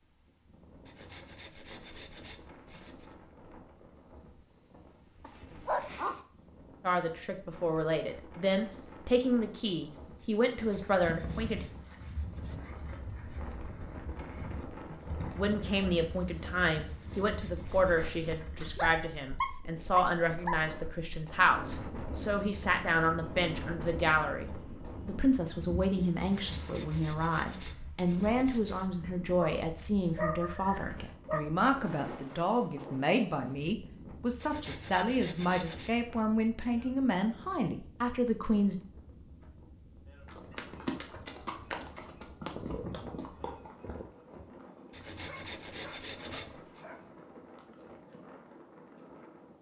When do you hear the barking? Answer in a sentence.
The barking can be heard from 5.2 to 6.2 s, from 18.3 to 20.6 s, from 29.4 to 31.4 s and from 45.1 to 47.0 s.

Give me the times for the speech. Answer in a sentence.
The speech can be heard from 6.8 to 11.7 s and from 14.9 to 38.8 s.